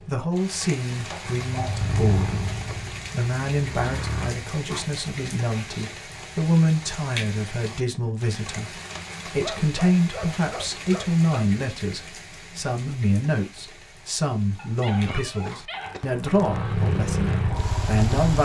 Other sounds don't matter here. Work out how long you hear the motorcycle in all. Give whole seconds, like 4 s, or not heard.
5 s.